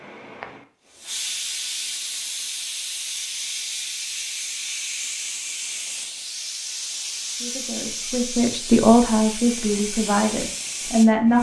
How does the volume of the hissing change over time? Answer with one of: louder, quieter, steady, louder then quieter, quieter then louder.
steady.